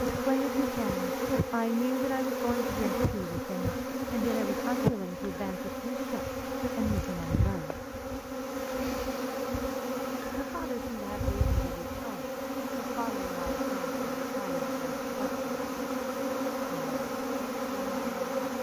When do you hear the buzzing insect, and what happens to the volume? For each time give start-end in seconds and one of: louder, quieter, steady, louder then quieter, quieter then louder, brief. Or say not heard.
0.0-18.5 steady.